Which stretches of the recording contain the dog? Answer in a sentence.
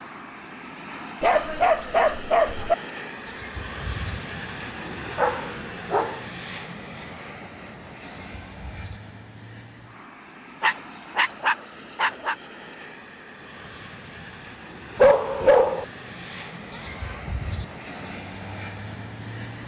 You can hear the dog from 1.2 to 2.8 s, from 5.2 to 6.2 s, from 10.6 to 12.3 s and from 14.9 to 15.8 s.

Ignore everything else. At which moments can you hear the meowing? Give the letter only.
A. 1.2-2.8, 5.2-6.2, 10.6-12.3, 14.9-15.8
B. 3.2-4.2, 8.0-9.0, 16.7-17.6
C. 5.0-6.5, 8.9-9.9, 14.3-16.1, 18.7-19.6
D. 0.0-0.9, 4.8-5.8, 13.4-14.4
B.